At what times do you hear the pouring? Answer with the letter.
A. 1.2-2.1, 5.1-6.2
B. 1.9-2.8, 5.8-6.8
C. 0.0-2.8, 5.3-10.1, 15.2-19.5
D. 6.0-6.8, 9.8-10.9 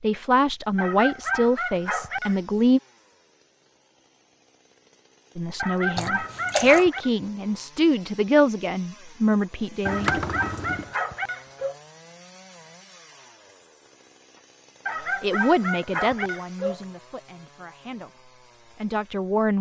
D.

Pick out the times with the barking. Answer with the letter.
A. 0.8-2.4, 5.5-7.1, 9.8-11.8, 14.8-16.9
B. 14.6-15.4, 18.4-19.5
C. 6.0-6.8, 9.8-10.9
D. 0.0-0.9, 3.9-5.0
A.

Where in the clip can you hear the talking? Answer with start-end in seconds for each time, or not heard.
0.0-2.8, 5.3-10.1, 15.2-19.5.